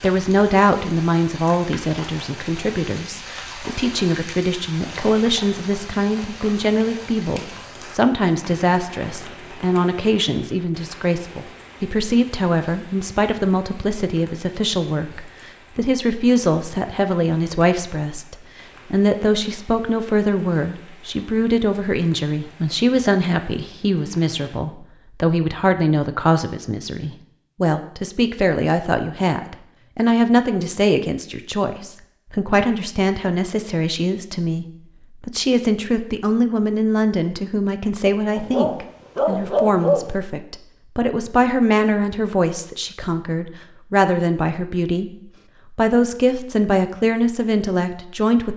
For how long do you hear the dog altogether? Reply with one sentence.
You can hear the dog for 2 seconds altogether.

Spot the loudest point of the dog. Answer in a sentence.
The volume of the dog peaks at 40 seconds.